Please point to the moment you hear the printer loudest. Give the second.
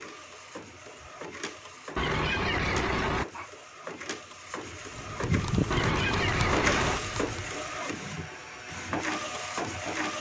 7 s.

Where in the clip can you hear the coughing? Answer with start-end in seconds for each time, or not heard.
1.9-3.5, 5.7-7.0.